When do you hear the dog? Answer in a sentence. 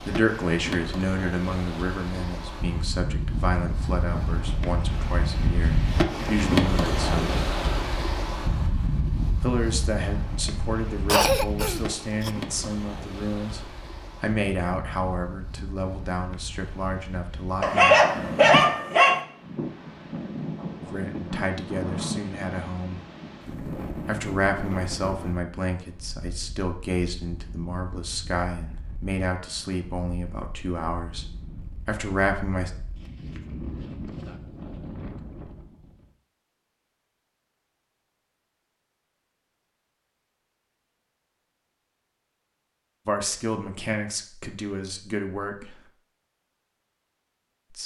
The dog can be heard from 17.6 to 19.1 s.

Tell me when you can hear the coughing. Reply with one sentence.
The coughing can be heard from 11.1 to 12.3 s.